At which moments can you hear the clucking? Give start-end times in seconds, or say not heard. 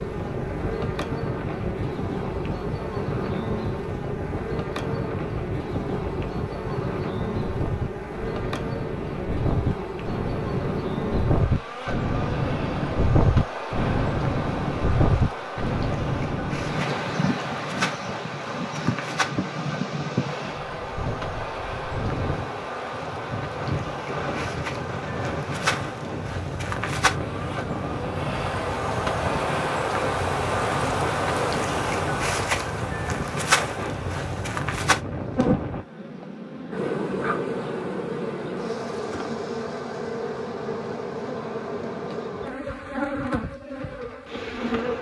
not heard.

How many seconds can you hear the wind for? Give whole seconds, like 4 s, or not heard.
36 s.